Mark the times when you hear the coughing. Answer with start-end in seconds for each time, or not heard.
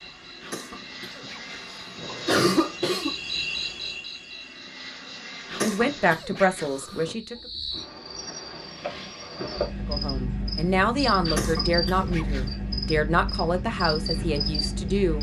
0.4-3.1, 5.5-7.2, 11.2-12.4.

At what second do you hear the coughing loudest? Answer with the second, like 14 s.
2 s.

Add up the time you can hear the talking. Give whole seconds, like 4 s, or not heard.
7 s.